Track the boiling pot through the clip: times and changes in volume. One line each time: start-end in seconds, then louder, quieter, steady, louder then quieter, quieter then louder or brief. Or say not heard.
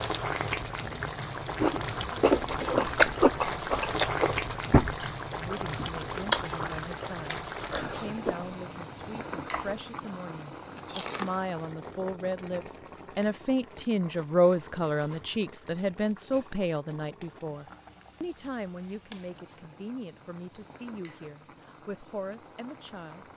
0.0-23.3 quieter.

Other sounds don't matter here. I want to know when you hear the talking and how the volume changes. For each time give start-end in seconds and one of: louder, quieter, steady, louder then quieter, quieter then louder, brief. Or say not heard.
5.3-23.2 louder then quieter.